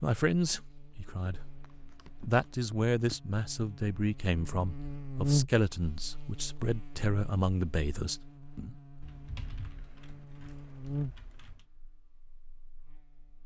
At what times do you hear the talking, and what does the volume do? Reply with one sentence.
The talking can be heard briefly from 0.0 to 1.6 s; and from 2.2 to 8.8 s, at a steady volume.